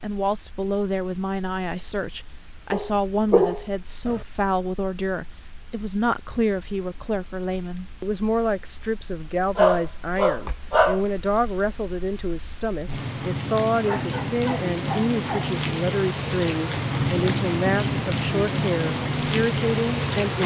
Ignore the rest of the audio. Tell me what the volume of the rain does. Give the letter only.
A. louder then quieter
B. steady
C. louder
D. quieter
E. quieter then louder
C.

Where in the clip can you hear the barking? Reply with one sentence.
The barking can be heard from 2.7 to 4.2 s, from 9.6 to 11.0 s and from 13.8 to 15.6 s.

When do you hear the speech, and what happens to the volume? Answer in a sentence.
The speech can be heard from 0.0 to 20.4 s, at a steady volume.